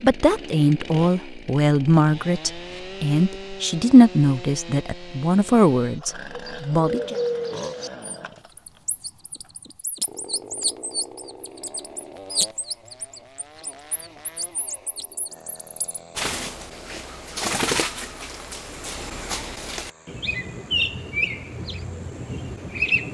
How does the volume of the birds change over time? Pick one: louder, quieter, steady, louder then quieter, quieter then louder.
quieter then louder.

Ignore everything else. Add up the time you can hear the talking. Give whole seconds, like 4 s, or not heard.
7 s.